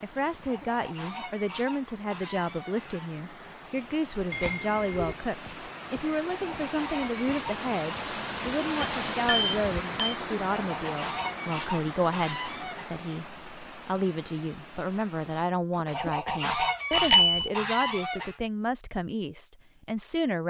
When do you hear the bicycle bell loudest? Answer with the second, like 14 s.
17 s.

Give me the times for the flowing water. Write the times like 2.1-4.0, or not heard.
0.0-15.5.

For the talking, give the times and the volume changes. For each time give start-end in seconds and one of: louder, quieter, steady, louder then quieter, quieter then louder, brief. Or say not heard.
0.0-20.4 steady.